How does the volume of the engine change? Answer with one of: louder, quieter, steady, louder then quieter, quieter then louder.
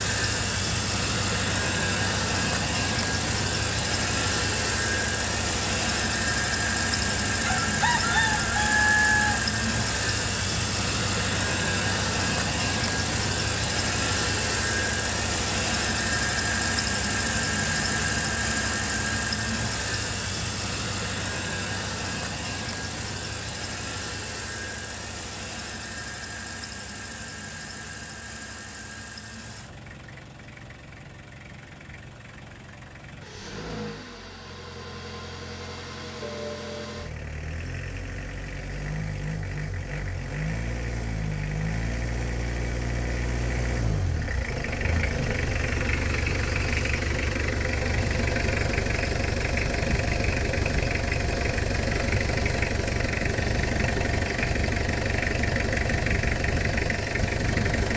quieter then louder.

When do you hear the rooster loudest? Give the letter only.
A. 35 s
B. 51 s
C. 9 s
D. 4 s
C.